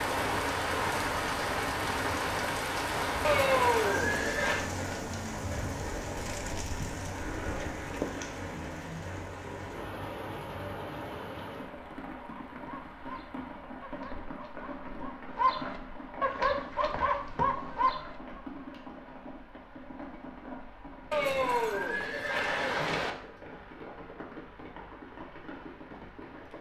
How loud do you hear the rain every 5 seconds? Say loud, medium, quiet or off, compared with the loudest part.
loud, medium, medium, quiet, quiet, quiet.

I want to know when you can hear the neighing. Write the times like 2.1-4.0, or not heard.
3.2-4.7, 21.1-23.1.